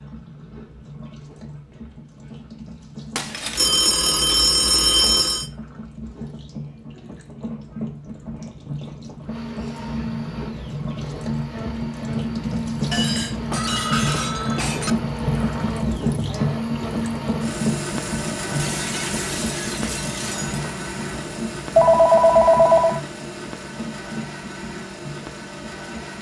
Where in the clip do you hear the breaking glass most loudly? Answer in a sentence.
The loudest moment of the breaking glass is at 14 seconds.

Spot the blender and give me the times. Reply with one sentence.
You can hear the blender from 9.2 to 26.1 s.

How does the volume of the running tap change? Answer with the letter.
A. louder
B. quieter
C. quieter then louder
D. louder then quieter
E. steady
D.